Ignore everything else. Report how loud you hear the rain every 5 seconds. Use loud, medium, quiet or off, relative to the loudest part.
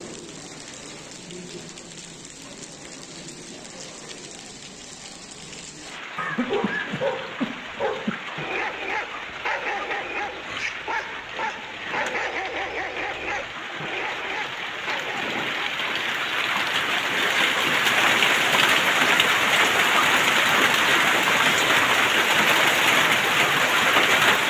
quiet, quiet, quiet, loud, loud.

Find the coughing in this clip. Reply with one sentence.
The coughing can be heard from 6.2 to 8.2 s.